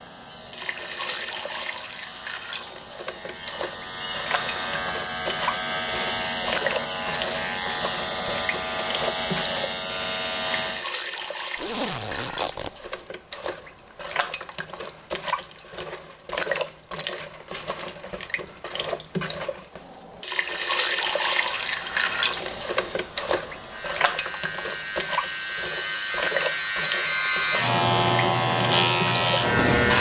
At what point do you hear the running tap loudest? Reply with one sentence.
The loudest moment of the running tap is at 21 seconds.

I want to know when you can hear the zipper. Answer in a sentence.
You can hear the zipper from 11.6 to 13.1 s.